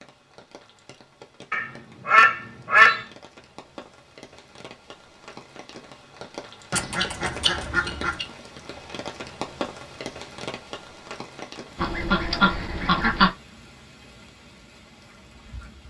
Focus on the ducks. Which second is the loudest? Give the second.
3 s.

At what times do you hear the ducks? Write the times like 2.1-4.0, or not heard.
1.5-3.0, 6.7-8.2, 11.8-13.3.